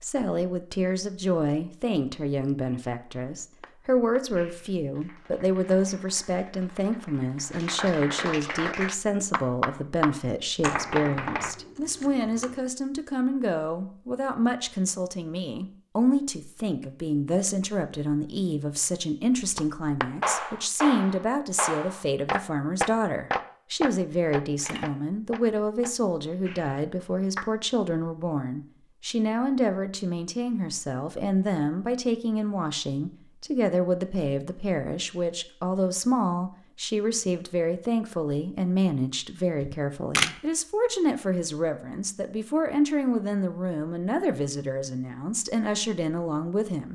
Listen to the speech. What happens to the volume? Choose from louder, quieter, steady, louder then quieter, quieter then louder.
steady.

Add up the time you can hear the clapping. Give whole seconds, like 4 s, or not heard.
16 s.